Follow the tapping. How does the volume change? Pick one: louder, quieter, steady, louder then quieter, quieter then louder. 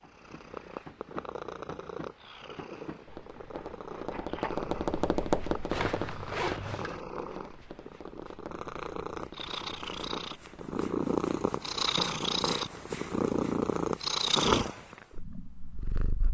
louder then quieter.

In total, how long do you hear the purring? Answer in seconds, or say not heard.
16 s.